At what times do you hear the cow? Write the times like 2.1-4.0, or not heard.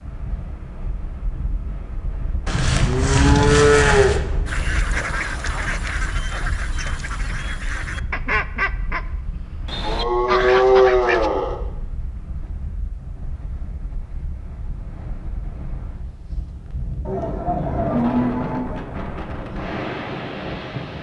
2.5-4.2, 9.8-11.6, 17.1-18.6.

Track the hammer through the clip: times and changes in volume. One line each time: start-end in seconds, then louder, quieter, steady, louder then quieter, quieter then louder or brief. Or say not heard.
not heard.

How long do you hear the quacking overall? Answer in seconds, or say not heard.
7 s.